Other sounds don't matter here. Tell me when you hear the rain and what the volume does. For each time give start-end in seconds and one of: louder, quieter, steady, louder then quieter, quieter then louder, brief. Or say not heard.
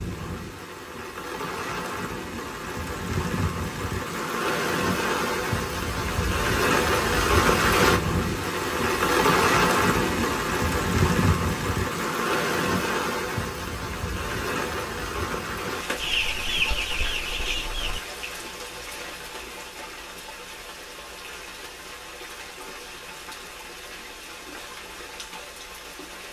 0.0-26.2 louder then quieter.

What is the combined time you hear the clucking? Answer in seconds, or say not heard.
2 s.